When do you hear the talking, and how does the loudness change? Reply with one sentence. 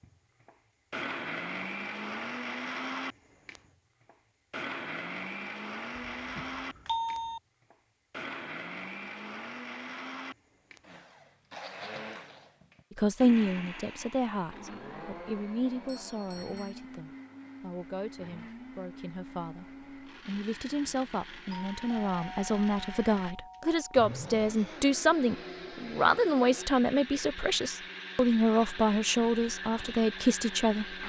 The talking can be heard from 12.9 to 31.0 s, getting quieter then louder.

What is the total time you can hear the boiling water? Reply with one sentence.
The boiling water can't be heard in this clip.